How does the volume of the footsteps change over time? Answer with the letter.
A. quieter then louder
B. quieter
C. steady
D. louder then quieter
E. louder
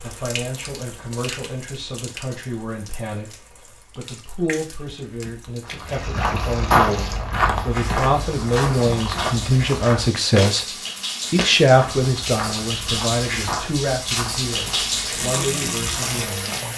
B.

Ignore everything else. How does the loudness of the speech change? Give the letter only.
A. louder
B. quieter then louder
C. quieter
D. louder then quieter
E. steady
D.